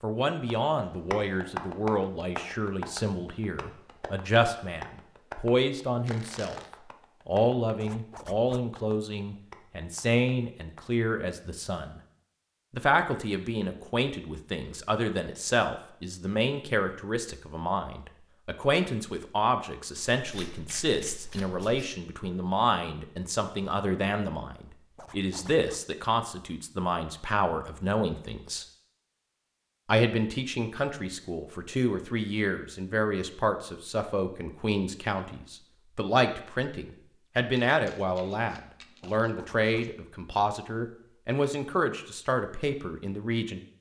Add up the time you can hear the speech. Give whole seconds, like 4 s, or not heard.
41 s.